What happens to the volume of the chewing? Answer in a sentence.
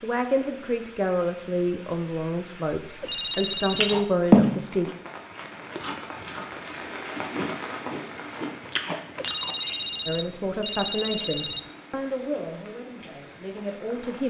The volume of the chewing goes down, then up.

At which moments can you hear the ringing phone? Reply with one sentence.
The ringing phone can be heard from 3.0 to 4.0 s and from 9.2 to 11.7 s.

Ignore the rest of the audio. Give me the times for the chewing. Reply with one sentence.
The chewing can be heard from 3.3 to 9.6 s.